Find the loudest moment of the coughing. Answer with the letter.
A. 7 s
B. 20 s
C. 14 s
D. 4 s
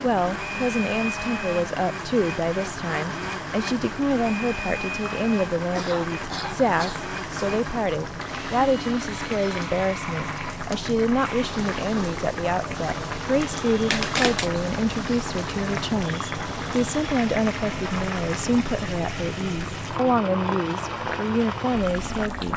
C.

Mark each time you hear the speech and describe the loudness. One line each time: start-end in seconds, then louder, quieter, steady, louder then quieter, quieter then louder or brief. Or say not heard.
0.0-22.5 steady.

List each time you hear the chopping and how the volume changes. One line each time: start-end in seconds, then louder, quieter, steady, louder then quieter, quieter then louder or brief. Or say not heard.
not heard.